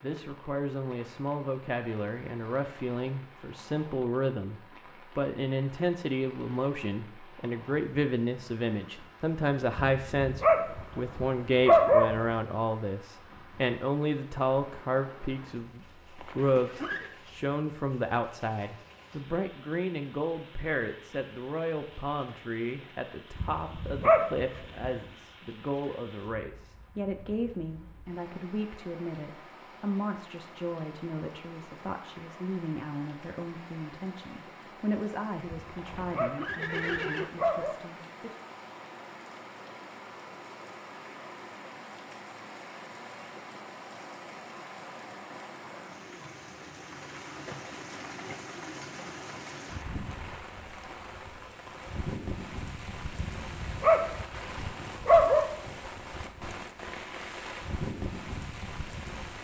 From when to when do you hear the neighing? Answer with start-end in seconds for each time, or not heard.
16.1-17.1, 35.8-37.3.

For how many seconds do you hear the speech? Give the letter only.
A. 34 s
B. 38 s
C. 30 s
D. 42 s
B.